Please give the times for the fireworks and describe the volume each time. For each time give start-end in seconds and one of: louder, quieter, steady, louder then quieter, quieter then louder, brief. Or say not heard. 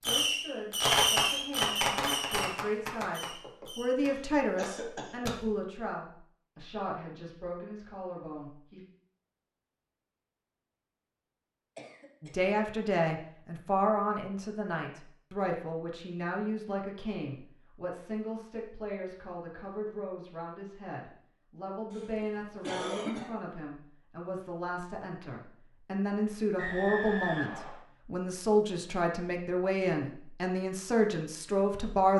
0.0-5.3 quieter.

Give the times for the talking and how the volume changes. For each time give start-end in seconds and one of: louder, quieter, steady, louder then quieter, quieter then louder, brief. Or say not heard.
0.1-8.8 louder then quieter
12.2-32.1 quieter then louder.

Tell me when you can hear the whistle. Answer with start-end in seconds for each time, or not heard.
26.6-27.8.